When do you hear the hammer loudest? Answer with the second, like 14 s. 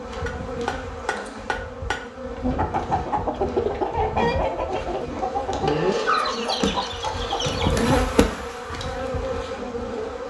6 s.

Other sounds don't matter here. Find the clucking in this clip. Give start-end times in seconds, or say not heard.
2.3-8.0.